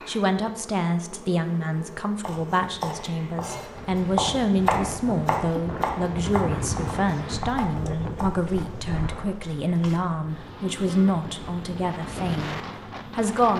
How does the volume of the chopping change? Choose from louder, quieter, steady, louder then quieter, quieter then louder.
louder then quieter.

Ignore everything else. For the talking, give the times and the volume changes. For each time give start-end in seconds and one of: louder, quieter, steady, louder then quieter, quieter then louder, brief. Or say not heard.
0.1-13.5 steady.